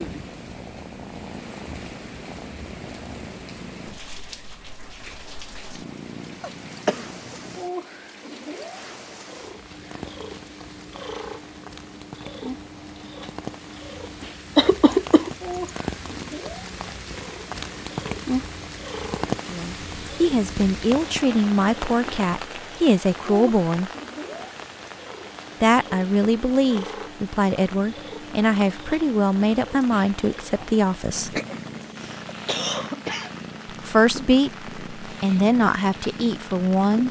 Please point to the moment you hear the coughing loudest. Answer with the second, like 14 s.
15 s.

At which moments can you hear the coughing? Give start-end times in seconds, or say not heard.
6.4-7.3, 14.6-15.7, 31.3-33.3.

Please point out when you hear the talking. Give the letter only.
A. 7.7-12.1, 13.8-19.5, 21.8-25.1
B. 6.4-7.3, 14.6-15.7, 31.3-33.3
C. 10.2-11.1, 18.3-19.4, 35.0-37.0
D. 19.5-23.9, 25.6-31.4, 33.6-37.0
D.